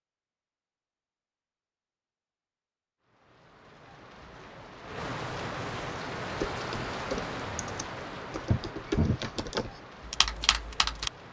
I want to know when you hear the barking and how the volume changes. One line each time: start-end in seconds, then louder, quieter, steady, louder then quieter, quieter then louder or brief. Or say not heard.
not heard.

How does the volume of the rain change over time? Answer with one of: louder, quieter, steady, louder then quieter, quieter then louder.
louder then quieter.